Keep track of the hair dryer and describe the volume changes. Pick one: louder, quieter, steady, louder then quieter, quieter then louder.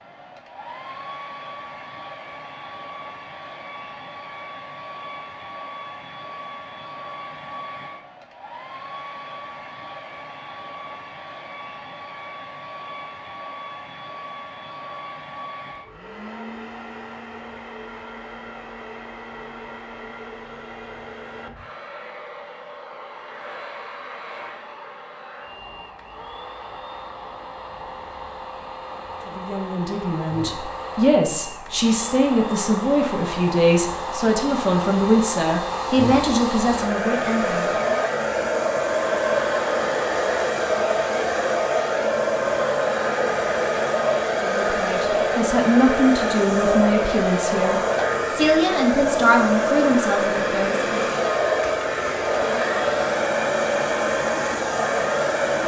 louder.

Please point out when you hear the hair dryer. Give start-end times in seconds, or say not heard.
0.0-55.6.